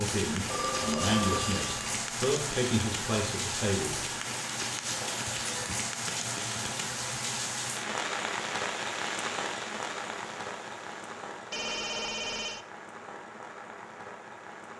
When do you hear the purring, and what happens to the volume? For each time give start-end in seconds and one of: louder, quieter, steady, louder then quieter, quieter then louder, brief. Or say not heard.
not heard.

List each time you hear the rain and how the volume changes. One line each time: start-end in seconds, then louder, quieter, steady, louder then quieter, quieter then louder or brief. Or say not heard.
0.0-14.7 quieter.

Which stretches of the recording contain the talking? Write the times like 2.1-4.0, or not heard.
0.0-4.0.